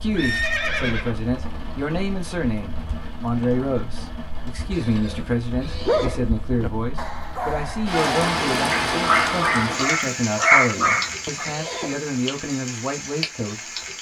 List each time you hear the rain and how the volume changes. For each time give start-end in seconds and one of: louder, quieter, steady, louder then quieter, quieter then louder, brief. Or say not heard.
0.0-13.9 louder then quieter.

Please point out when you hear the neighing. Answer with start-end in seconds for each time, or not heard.
0.1-1.1, 4.8-6.3, 10.8-11.9.